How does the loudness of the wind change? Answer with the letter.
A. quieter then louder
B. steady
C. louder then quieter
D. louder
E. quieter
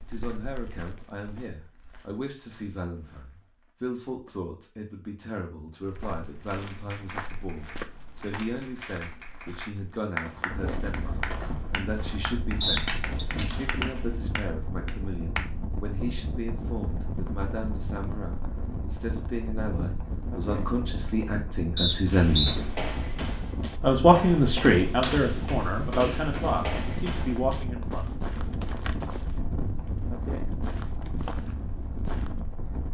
B.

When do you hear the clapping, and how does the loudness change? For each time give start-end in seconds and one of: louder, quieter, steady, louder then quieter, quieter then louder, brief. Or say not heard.
6.5-15.5 louder.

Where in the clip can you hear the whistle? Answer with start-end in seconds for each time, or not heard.
12.6-13.2, 21.8-22.6.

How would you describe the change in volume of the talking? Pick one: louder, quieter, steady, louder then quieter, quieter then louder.
louder.